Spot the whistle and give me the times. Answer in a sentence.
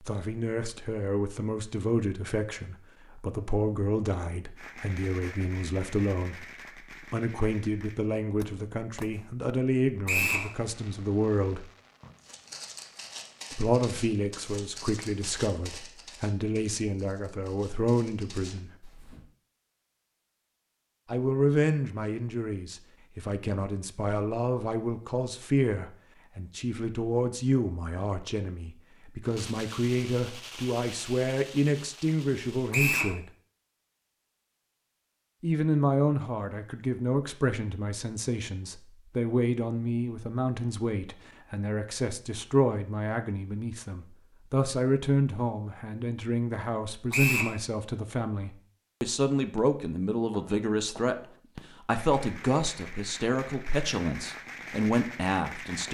You can hear the whistle from 10.1 to 10.5 s, from 32.7 to 33.1 s and from 47.1 to 47.5 s.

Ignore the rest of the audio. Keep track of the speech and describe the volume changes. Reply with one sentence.
The volume of the speech stays about the same.